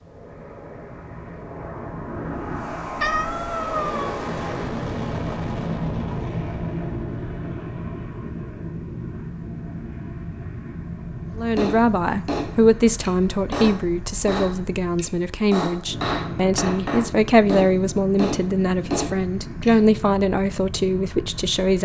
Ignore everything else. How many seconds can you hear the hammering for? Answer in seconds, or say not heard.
8 s.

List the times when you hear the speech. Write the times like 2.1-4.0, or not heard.
11.3-21.7.